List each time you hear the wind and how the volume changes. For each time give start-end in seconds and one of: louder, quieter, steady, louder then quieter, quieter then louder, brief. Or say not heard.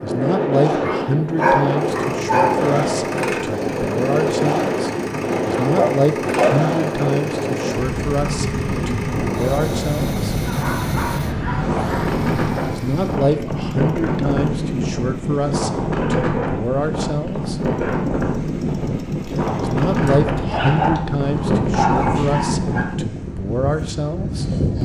0.0-24.8 steady.